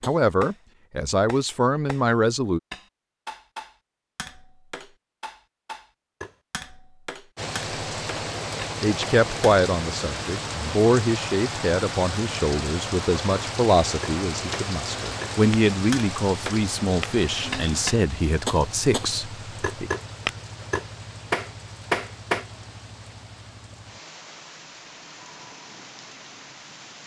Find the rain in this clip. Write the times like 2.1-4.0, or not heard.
7.3-27.0.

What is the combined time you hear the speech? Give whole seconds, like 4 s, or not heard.
14 s.